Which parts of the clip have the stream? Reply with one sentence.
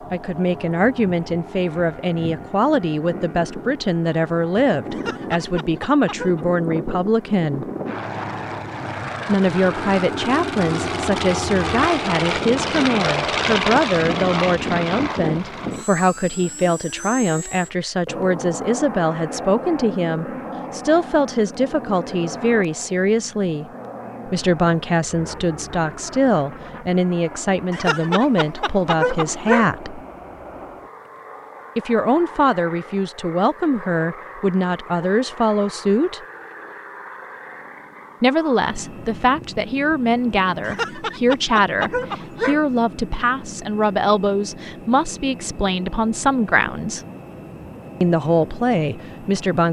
You can't hear the stream here.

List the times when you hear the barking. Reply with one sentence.
The barking can be heard from 4.9 to 6.5 s, from 27.7 to 29.7 s and from 40.6 to 42.6 s.